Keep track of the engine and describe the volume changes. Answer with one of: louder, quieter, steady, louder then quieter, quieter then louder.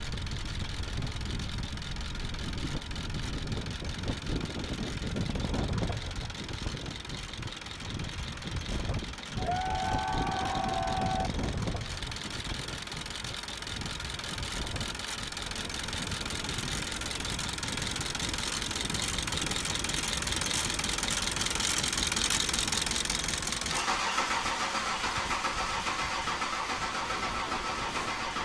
louder.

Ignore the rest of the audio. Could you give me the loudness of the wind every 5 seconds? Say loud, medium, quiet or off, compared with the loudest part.
loud, loud, loud, medium, medium, medium.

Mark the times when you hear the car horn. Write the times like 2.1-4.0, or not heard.
not heard.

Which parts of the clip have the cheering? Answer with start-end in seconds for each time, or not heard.
9.3-11.3.